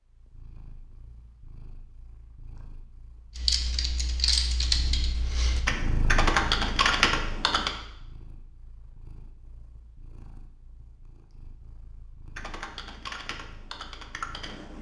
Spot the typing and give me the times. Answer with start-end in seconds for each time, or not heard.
3.4-7.8, 12.3-14.7.